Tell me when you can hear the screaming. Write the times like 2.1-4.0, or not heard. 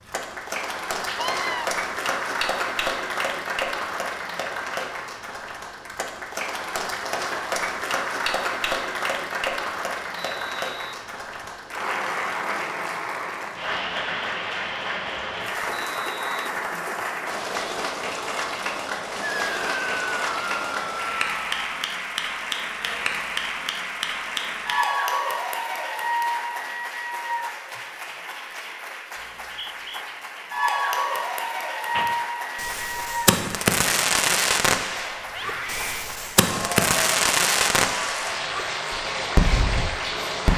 1.1-1.6, 19.2-21.6, 35.2-36.0.